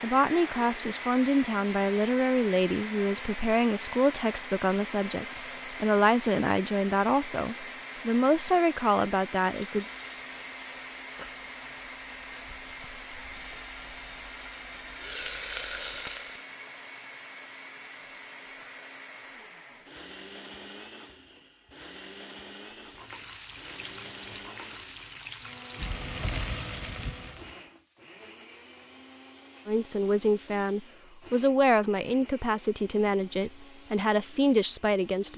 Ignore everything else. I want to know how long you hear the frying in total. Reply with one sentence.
You can hear the frying for 12 seconds altogether.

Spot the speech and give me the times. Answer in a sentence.
The speech can be heard from 0.0 to 9.8 s and from 29.6 to 35.3 s.